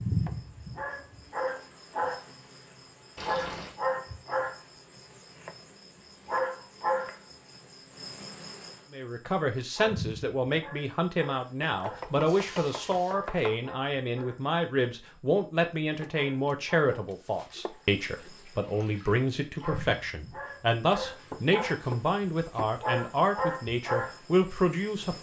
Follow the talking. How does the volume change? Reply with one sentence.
The loudness of the talking stays about the same.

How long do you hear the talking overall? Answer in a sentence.
You can hear the talking for 16 seconds altogether.